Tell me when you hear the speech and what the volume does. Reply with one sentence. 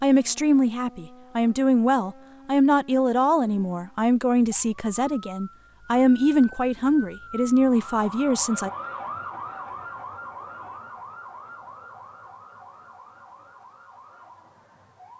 The speech can be heard from 0.0 to 8.7 s, at a steady volume.